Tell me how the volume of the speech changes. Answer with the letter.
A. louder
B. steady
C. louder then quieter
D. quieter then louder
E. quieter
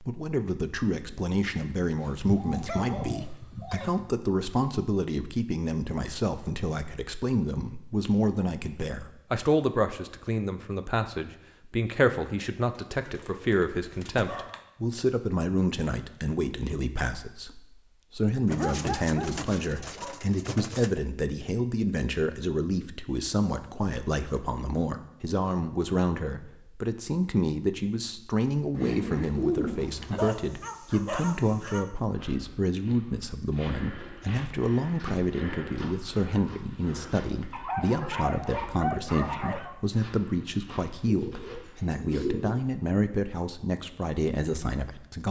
B.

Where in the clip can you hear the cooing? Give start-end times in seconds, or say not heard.
2.2-4.2, 12.9-14.4, 18.4-21.0, 28.7-30.4, 41.0-42.6.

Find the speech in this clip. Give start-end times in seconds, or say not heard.
0.0-45.2.